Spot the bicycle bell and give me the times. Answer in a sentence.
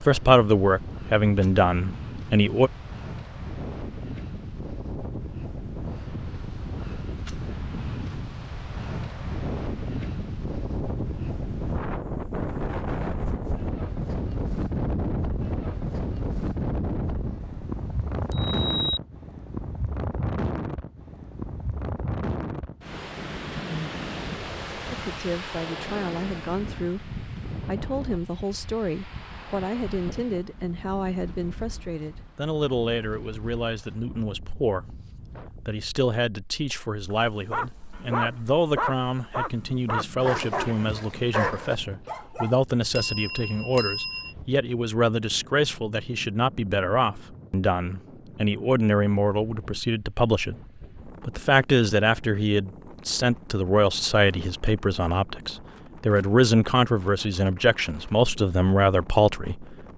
The bicycle bell can be heard from 17.4 to 19.0 s and from 43.0 to 44.3 s.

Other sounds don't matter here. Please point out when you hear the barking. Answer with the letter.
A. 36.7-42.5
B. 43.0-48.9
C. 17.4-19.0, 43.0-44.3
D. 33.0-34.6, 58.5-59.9
A.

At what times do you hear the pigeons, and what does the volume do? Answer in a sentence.
The pigeons can't be heard in this clip.